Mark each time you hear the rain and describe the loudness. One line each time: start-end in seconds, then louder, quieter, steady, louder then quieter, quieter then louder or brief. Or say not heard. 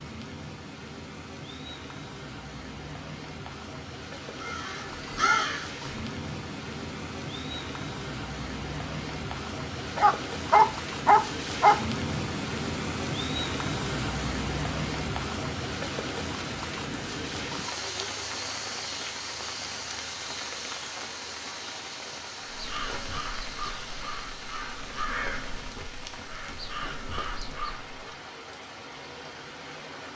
0.0-30.1 louder then quieter.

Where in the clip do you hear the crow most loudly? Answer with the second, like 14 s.
5 s.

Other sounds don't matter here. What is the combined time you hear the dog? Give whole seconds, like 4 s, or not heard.
2 s.